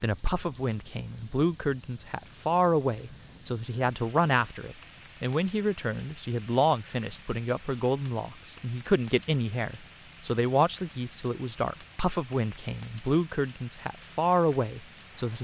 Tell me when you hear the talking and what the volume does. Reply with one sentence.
You can hear the talking from 0.0 to 15.4 s, at a steady volume.